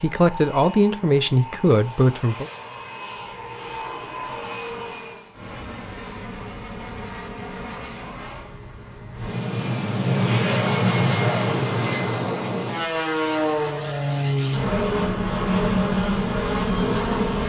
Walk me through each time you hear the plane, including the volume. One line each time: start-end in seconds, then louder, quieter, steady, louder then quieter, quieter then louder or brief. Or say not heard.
0.0-17.4 louder.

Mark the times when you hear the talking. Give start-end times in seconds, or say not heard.
0.0-2.5.